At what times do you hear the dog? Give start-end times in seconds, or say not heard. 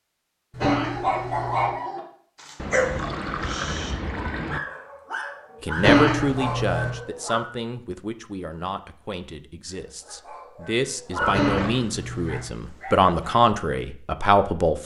0.6-7.5, 9.7-13.4.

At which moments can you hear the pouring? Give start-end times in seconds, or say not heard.
2.5-4.6, 11.2-11.9.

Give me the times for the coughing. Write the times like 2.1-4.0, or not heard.
0.5-1.7, 5.8-6.9, 11.2-12.4.